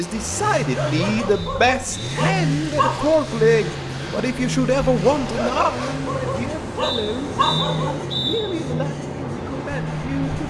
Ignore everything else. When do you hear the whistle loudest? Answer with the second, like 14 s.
8 s.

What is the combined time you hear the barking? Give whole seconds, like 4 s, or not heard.
5 s.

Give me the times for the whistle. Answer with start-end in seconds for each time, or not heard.
1.3-2.2, 6.8-8.4.